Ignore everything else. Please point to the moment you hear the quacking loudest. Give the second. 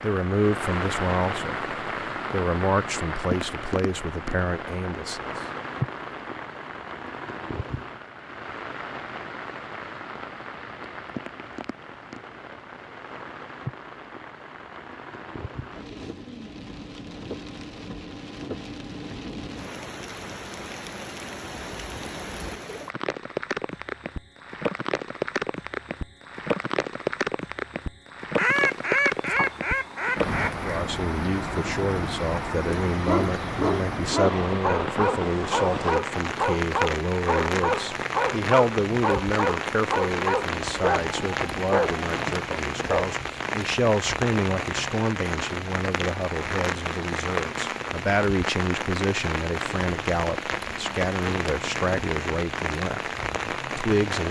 29 s.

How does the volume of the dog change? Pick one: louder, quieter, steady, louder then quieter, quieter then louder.
steady.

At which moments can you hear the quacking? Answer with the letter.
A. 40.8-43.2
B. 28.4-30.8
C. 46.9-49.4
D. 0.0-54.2
B.